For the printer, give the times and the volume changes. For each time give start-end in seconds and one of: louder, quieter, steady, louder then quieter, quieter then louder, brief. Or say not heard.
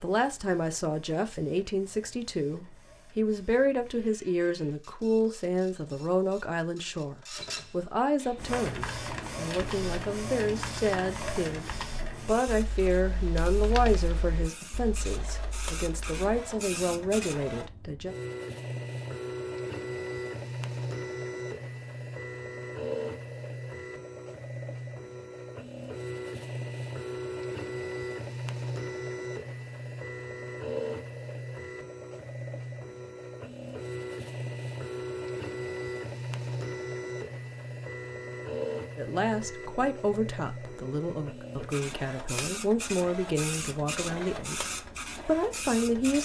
0.0-46.2 louder.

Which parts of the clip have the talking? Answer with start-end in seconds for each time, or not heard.
0.0-18.1, 39.0-46.2.